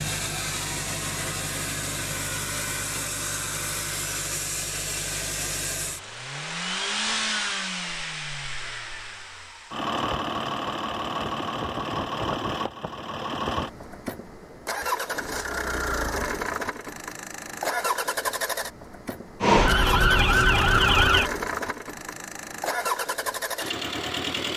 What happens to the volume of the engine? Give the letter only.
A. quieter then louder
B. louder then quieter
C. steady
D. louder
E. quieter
C.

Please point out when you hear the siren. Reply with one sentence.
The siren can be heard from 19.4 to 21.3 s.